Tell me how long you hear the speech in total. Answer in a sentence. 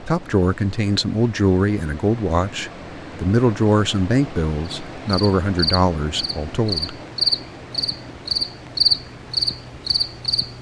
You can hear the speech for 7 seconds altogether.